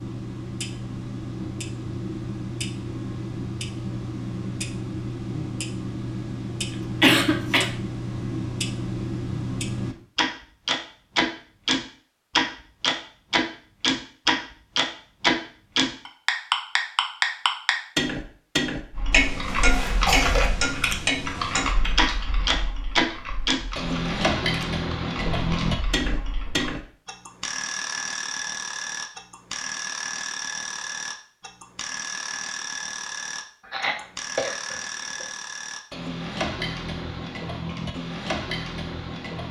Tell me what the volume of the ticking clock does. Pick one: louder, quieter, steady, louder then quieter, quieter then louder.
louder then quieter.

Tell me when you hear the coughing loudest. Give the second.
7 s.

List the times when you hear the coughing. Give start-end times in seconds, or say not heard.
7.0-7.7, 19.4-20.5, 33.6-35.2.